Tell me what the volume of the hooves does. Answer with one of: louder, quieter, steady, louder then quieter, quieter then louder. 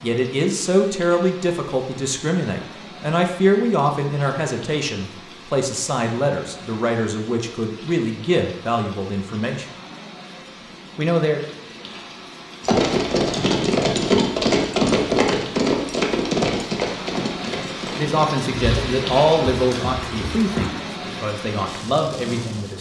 quieter.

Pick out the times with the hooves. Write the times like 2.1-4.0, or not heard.
12.6-20.7.